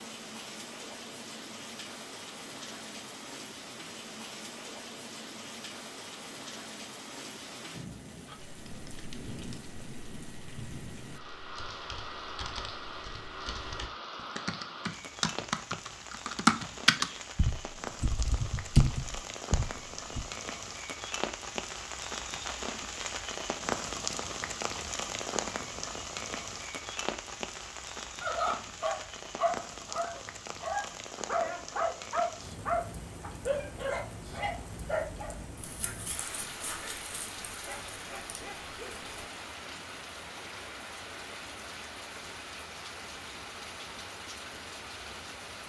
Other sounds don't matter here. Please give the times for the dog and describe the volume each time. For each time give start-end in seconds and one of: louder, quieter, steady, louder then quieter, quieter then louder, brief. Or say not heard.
28.2-39.2 quieter.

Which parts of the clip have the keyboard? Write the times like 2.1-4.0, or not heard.
8.2-20.2.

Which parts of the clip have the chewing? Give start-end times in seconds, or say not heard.
not heard.